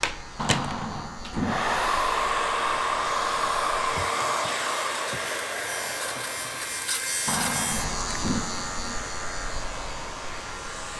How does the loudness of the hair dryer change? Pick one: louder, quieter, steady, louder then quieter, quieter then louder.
quieter.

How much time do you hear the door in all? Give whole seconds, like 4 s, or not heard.
3 s.